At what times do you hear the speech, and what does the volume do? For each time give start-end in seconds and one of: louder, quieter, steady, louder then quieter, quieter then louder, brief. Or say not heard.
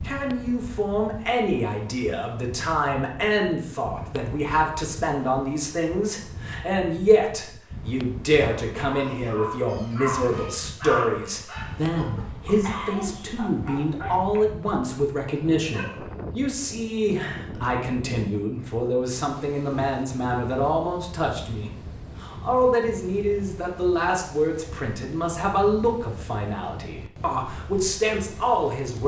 0.0-29.0 steady.